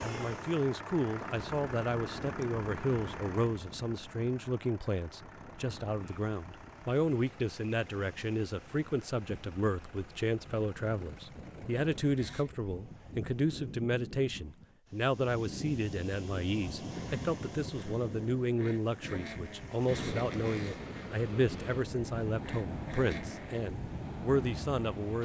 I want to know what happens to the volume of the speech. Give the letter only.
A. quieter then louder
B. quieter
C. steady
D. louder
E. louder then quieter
C.